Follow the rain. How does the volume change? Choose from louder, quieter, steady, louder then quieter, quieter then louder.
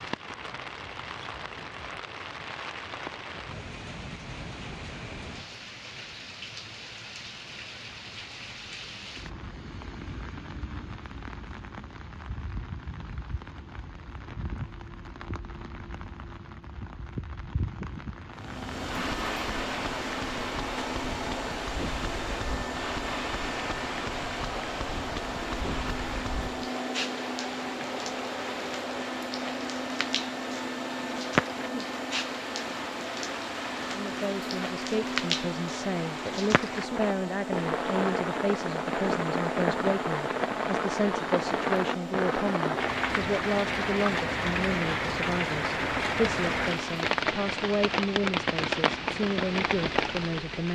louder.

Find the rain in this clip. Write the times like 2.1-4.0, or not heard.
0.0-50.7.